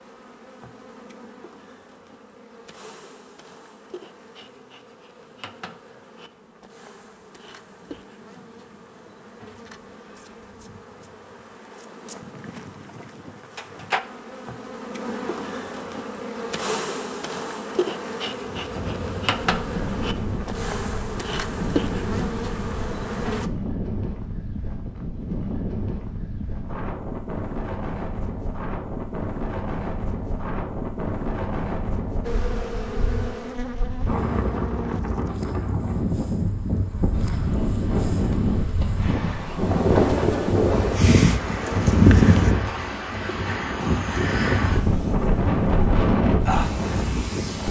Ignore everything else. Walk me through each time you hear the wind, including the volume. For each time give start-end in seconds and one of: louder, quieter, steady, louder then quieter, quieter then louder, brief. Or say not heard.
18.4-47.6 louder.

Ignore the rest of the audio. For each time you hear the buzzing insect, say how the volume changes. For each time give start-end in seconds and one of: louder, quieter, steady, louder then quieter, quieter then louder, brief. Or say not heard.
0.0-23.5 louder
32.2-42.5 quieter then louder.